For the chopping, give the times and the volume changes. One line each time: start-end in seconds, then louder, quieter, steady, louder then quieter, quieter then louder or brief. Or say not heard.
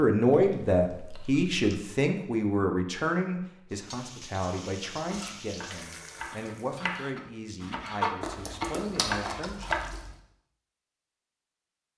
4.5-9.9 louder.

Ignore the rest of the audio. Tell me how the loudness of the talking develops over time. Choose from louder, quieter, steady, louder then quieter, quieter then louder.
quieter.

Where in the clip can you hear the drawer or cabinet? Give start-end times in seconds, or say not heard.
not heard.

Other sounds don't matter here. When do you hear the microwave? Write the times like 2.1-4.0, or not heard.
not heard.